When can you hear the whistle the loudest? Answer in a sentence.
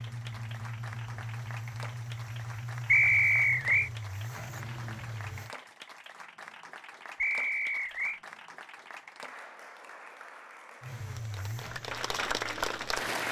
The volume of the whistle peaks at 3 seconds.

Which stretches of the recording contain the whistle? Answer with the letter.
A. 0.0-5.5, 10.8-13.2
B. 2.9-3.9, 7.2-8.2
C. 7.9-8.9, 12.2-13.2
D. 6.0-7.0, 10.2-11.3
B.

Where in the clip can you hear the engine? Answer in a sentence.
The engine can be heard from 0.0 to 5.5 s and from 10.8 to 13.2 s.